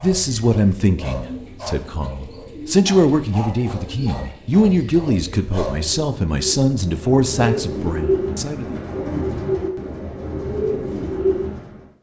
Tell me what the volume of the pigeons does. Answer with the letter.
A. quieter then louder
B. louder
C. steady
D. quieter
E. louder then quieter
B.